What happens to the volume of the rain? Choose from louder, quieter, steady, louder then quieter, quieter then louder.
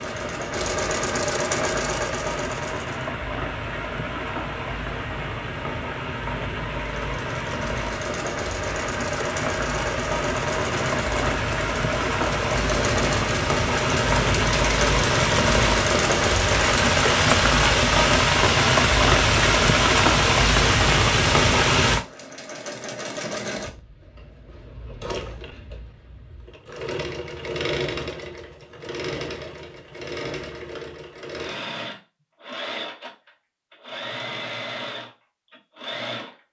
louder.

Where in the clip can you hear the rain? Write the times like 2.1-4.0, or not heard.
0.0-22.1.